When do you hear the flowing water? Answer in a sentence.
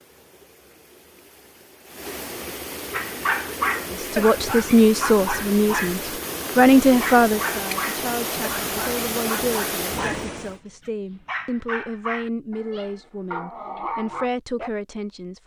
The flowing water can be heard from 0.0 to 10.6 s.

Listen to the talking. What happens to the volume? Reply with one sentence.
The loudness of the talking goes down.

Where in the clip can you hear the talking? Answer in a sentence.
You can hear the talking from 3.9 to 15.4 s.